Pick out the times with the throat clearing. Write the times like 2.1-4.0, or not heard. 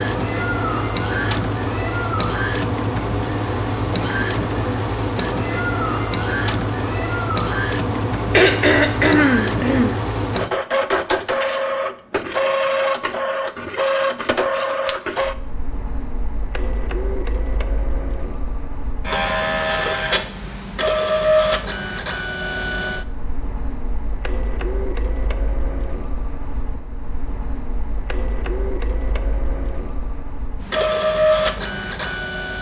7.9-9.9.